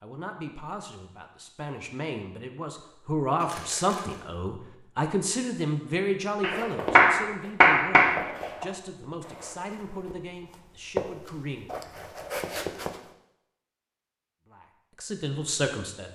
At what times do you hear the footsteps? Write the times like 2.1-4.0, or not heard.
6.3-13.0.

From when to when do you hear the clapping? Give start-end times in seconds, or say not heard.
6.4-8.1.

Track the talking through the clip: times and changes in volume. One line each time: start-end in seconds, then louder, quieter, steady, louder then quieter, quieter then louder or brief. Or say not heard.
0.0-11.8 louder then quieter
14.4-16.1 brief.